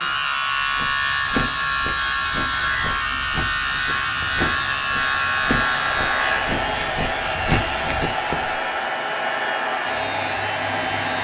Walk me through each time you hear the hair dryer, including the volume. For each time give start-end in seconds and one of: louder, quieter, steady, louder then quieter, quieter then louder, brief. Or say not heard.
0.0-11.1 louder.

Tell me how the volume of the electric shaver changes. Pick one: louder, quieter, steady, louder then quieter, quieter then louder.
quieter.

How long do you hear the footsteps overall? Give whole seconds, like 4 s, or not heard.
8 s.